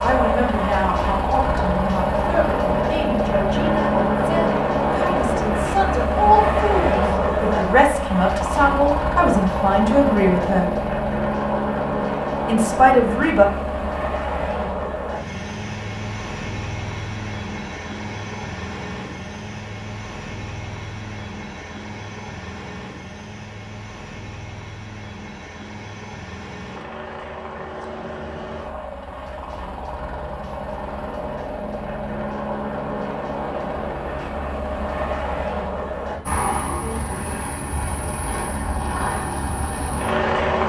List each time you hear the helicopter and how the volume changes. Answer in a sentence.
The helicopter can be heard from 0.0 to 40.6 s, getting quieter then louder.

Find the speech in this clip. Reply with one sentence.
The speech can be heard from 0.0 to 10.7 s and from 12.4 to 13.4 s.